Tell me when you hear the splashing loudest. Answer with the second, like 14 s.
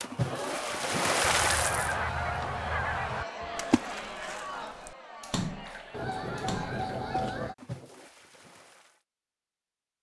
1 s.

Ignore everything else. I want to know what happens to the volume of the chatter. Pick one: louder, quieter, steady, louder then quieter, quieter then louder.
quieter.